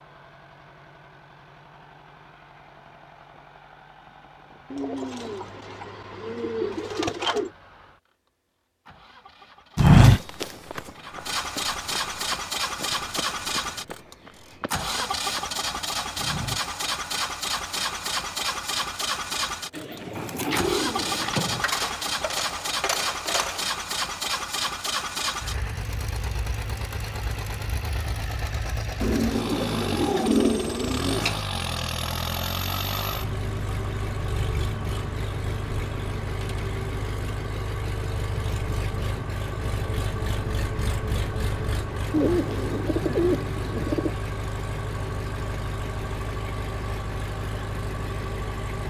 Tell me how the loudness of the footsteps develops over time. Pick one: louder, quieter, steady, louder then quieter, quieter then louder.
quieter.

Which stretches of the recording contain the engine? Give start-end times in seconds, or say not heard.
0.0-48.8.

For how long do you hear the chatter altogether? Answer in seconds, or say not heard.
not heard.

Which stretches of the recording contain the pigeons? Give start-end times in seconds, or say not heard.
4.7-7.5, 19.7-21.6, 29.0-31.4, 42.1-44.1.